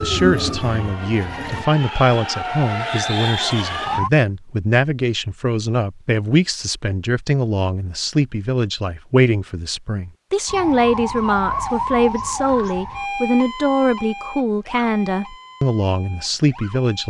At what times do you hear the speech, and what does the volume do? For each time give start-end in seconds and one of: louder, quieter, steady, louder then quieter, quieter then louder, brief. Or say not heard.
0.0-17.0 steady.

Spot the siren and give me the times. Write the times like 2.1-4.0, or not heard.
0.0-4.1, 10.4-17.0.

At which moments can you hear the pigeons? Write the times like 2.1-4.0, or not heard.
0.0-1.6.